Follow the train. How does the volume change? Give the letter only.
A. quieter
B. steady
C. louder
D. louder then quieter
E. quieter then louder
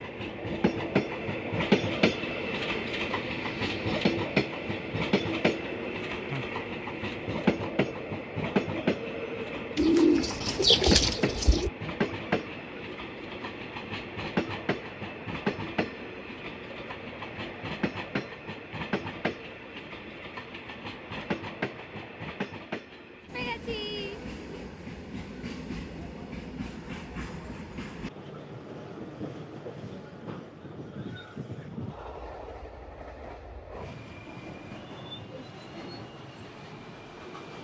A.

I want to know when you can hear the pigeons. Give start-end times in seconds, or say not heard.
9.8-11.7.